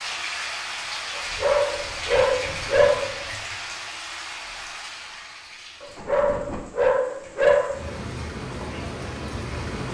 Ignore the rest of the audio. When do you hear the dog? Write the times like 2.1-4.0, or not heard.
1.1-3.1, 5.8-7.8.